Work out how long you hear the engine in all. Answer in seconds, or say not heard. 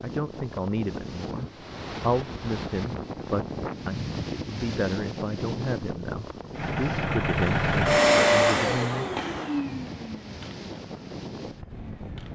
6 s.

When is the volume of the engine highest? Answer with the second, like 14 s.
8 s.